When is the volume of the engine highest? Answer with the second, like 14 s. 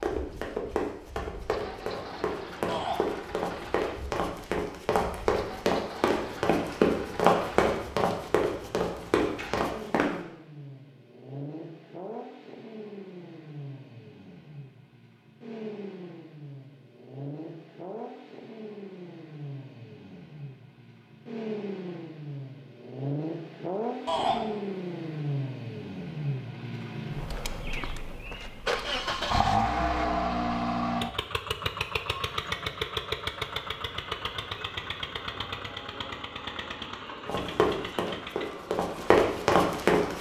30 s.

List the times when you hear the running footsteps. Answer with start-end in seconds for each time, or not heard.
0.0-10.1, 37.2-40.1.